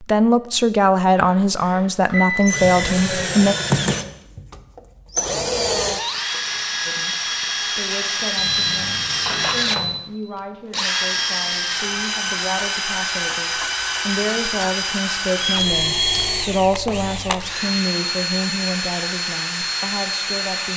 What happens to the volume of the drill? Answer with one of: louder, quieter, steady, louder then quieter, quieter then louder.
steady.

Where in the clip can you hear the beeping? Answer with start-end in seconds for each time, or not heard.
1.1-2.7, 8.3-9.9, 15.4-16.2.